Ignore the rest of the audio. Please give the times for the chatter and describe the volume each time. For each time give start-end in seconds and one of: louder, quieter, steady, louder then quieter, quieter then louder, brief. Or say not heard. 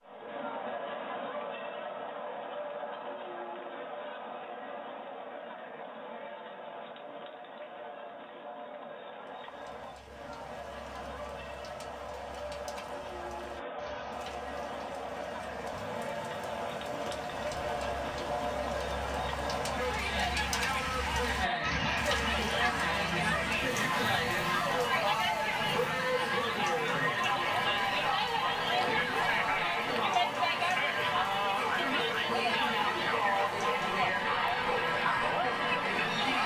0.0-36.4 louder.